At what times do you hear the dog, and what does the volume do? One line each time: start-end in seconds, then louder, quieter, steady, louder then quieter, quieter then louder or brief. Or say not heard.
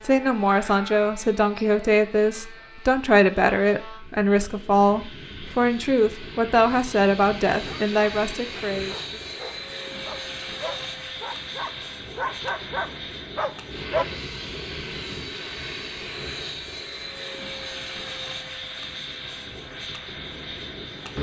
7.7-14.1 louder.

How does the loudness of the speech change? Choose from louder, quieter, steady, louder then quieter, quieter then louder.
steady.